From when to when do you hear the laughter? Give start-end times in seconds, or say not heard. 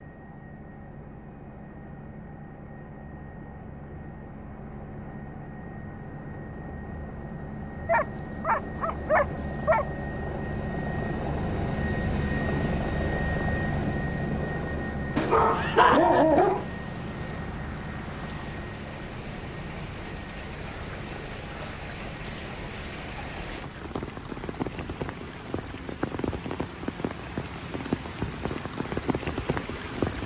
15.5-16.2.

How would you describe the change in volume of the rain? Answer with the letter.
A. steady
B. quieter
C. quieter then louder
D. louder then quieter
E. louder
E.